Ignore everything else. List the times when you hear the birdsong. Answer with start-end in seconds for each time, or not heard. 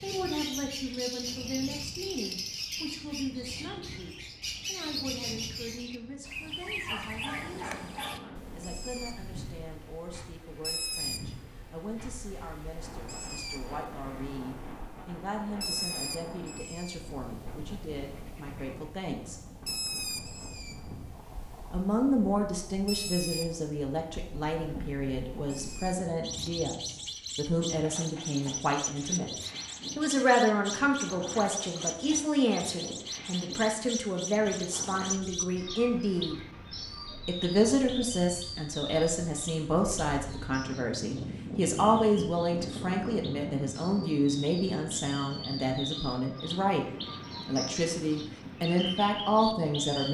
0.0-50.0.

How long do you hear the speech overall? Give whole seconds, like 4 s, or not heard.
45 s.